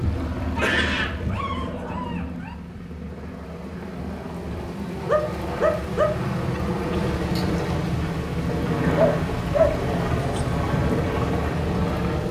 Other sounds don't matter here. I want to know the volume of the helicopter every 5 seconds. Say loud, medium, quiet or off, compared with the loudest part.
medium, loud, loud.